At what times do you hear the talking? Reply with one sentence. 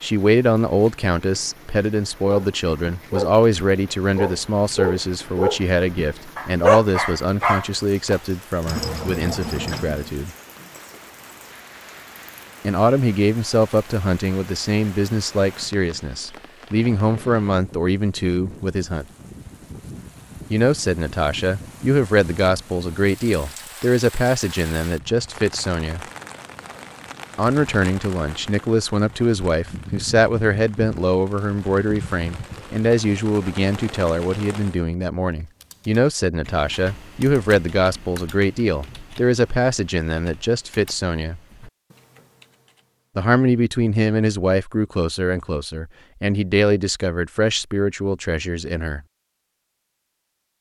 You can hear the talking from 0.0 to 10.3 s, from 12.6 to 19.1 s, from 20.5 to 26.0 s, from 27.4 to 41.4 s and from 43.1 to 49.0 s.